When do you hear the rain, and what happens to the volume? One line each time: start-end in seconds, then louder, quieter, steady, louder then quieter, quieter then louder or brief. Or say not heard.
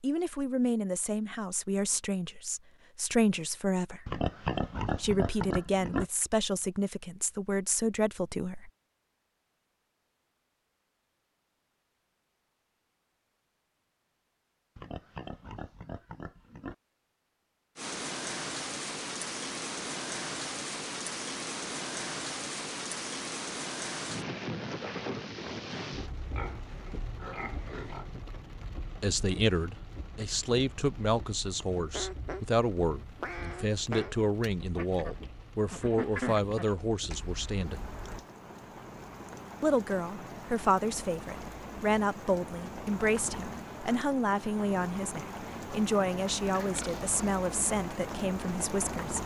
17.8-49.2 quieter then louder.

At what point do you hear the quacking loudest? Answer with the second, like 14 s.
36 s.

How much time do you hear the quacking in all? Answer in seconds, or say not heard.
6 s.